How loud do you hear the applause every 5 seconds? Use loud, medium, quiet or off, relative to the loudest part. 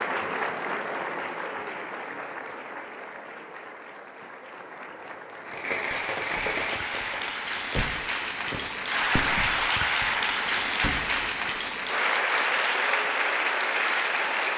medium, loud, loud.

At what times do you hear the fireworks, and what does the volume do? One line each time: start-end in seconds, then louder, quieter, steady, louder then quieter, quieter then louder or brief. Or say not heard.
5.5-9.7 quieter then louder
10.8-11.2 brief.